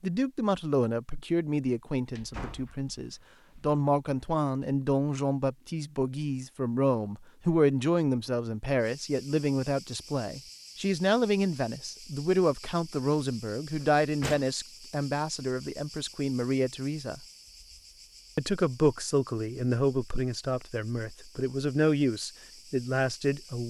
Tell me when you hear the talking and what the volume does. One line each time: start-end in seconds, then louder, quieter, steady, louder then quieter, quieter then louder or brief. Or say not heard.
0.0-17.2 steady
18.4-23.6 quieter then louder.